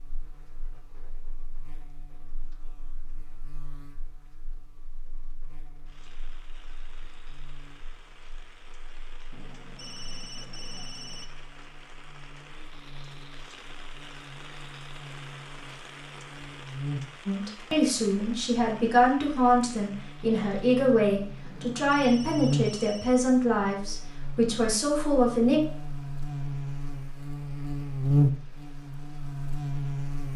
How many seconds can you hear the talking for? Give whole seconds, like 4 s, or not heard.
8 s.